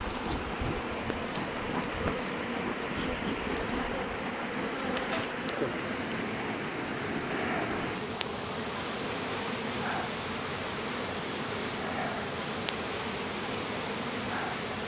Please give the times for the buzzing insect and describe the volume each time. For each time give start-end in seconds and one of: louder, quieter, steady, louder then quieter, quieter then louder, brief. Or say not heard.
0.0-14.8 steady.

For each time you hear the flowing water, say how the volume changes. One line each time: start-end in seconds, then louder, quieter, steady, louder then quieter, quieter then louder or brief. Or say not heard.
0.0-14.8 steady.